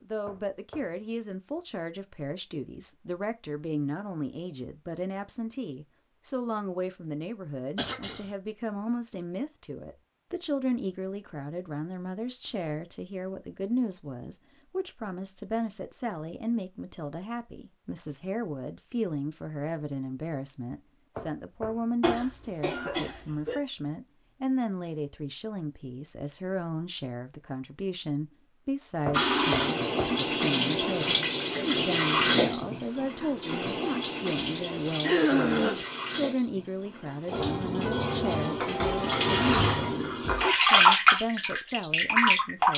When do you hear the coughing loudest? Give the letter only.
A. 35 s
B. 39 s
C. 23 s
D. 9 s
A.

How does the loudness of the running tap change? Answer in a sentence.
The loudness of the running tap goes down, then up.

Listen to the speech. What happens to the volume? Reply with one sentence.
The volume of the speech stays about the same.